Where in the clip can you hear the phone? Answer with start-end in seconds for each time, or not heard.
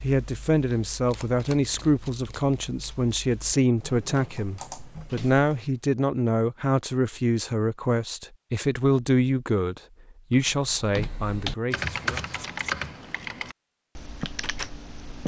not heard.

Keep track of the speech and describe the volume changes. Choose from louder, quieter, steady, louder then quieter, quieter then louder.
steady.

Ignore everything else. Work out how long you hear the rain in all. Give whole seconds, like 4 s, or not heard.
not heard.